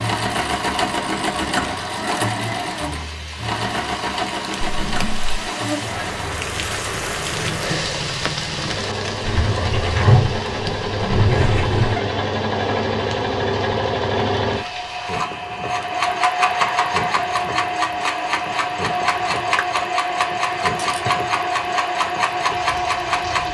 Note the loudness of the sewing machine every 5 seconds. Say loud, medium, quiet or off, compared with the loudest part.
loud, medium, loud, loud, loud.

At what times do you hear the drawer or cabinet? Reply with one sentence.
You can hear the drawer or cabinet from 4.6 to 5.3 s and from 9.2 to 12.0 s.